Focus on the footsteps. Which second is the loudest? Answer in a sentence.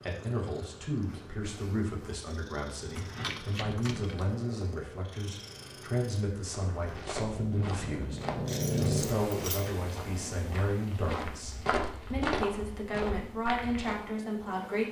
The loudest moment of the footsteps is at 12 seconds.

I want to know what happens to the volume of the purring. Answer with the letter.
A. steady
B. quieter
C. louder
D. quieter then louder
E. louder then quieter
E.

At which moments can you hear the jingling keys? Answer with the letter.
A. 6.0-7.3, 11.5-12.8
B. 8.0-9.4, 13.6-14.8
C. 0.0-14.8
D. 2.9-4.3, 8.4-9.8
D.